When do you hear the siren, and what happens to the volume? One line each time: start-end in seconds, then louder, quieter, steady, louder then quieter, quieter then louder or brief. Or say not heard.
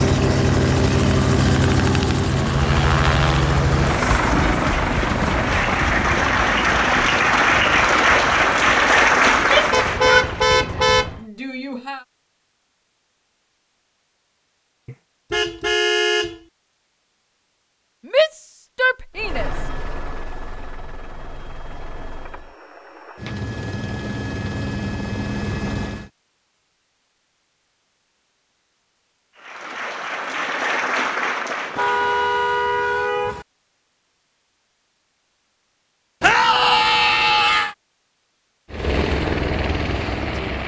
not heard.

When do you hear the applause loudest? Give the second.
9 s.